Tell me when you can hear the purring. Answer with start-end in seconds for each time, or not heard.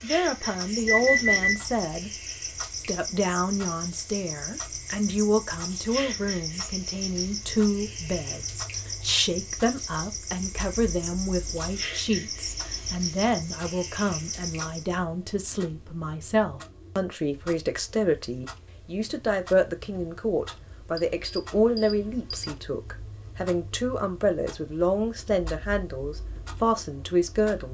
not heard.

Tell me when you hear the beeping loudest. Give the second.
1 s.